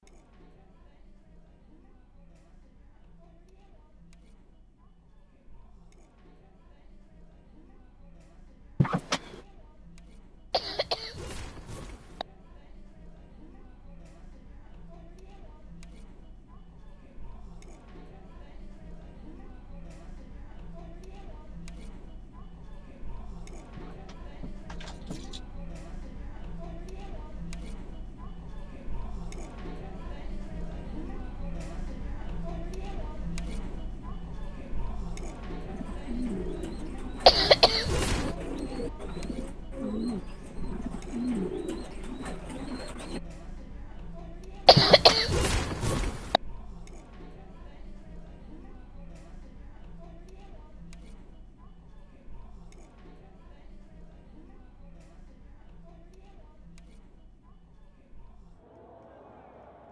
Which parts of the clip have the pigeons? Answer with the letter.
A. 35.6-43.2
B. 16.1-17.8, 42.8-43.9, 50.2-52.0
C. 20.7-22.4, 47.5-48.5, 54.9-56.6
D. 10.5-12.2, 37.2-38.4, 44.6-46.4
A.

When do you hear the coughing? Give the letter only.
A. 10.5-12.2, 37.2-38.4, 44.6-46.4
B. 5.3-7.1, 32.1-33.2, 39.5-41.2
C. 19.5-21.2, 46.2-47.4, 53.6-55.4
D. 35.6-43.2
A.